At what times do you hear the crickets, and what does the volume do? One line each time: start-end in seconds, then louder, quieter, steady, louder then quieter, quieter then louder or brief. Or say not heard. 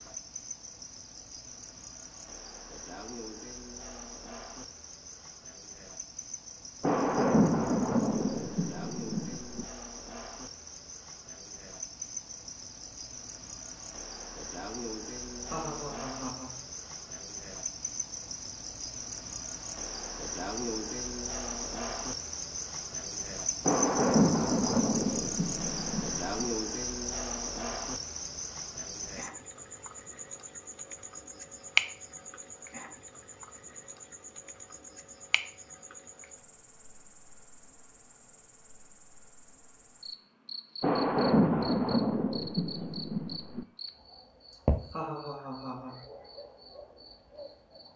0.0-47.9 louder then quieter.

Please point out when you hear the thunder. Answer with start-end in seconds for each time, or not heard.
6.8-9.7, 23.6-26.4, 40.8-43.6.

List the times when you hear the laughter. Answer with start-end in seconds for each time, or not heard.
15.5-16.6, 44.5-46.0.